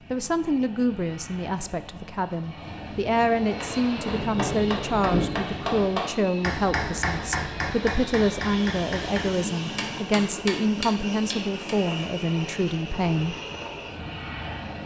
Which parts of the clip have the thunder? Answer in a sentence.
The thunder can be heard from 4.2 to 5.9 s.